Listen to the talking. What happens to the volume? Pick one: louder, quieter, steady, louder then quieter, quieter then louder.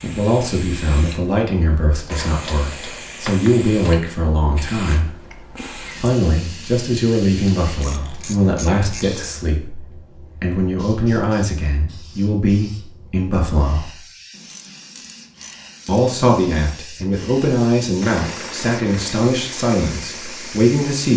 steady.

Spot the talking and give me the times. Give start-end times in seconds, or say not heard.
0.0-13.9, 15.8-21.1.